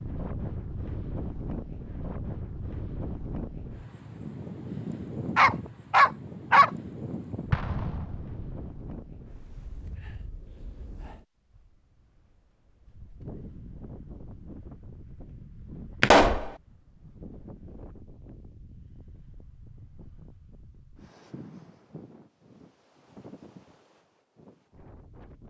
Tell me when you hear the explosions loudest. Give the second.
16 s.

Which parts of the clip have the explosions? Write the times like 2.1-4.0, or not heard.
7.5-8.7, 16.0-16.5.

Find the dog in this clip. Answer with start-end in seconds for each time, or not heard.
5.3-6.7.